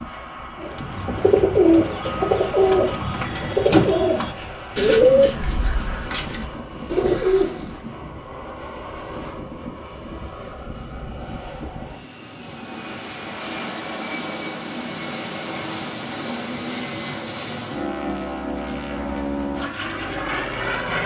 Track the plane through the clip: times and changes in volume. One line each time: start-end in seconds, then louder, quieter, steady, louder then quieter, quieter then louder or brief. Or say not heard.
0.0-21.0 louder.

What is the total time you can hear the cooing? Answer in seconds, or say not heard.
7 s.